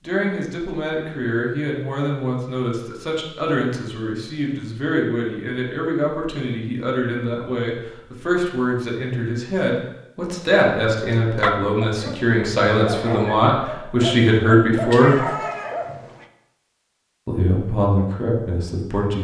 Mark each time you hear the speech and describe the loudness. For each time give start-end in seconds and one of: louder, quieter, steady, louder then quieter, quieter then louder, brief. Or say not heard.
0.0-15.2 louder
17.2-19.1 brief.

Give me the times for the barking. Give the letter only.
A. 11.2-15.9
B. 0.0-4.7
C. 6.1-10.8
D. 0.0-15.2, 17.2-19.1
A.